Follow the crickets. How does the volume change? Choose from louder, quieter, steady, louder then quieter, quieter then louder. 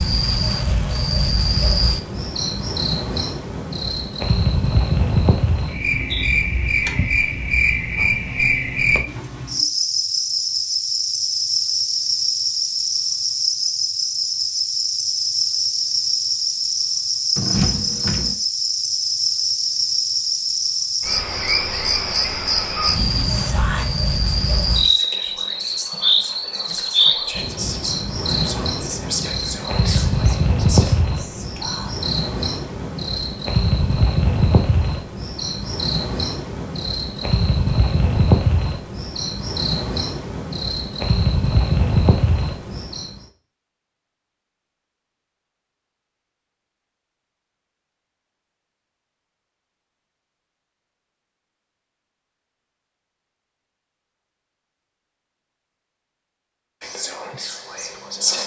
steady.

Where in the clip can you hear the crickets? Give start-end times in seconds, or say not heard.
0.0-43.2.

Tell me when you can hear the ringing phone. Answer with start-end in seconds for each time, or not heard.
17.4-18.4.